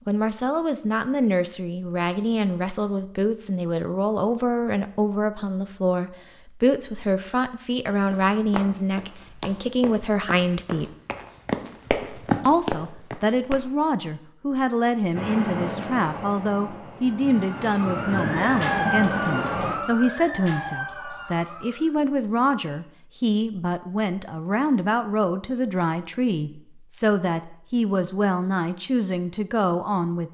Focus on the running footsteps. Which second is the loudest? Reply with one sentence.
The volume of the running footsteps peaks at 12 seconds.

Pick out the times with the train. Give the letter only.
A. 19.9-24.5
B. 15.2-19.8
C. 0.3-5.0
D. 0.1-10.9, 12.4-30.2
B.